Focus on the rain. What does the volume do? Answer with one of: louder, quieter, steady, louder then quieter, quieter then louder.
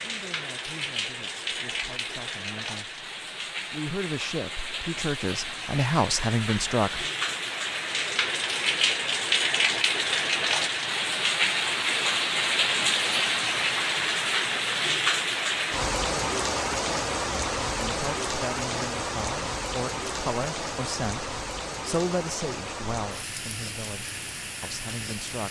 louder then quieter.